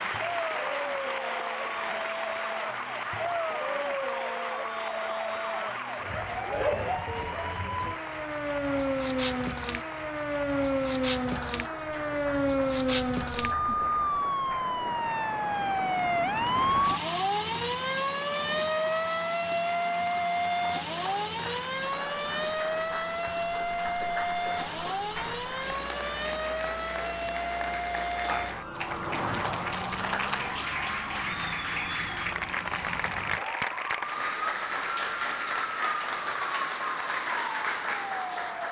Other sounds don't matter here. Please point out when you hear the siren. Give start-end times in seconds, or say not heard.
0.0-38.6.